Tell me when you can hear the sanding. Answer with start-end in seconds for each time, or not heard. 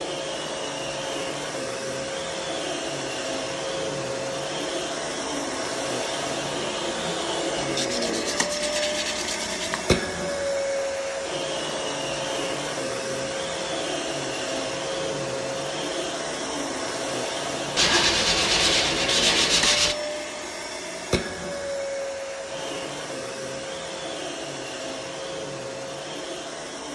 7.5-9.8, 17.8-19.9.